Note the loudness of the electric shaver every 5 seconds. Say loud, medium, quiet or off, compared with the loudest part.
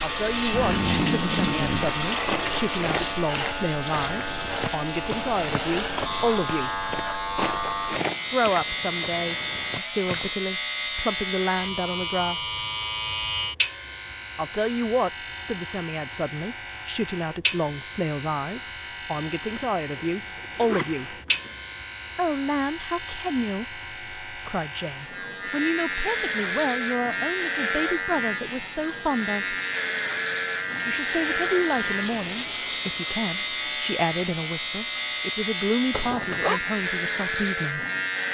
loud, loud, loud, medium, medium, loud, loud, loud.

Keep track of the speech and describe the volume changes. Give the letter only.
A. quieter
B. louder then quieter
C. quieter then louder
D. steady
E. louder
D.